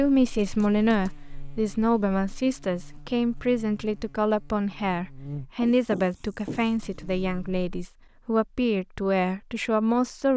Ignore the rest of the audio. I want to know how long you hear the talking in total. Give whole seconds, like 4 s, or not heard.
10 s.